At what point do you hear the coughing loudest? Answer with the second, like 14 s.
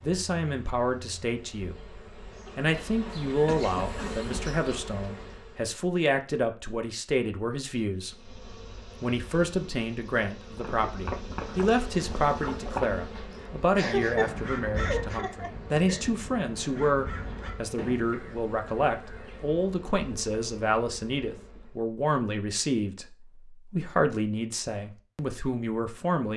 14 s.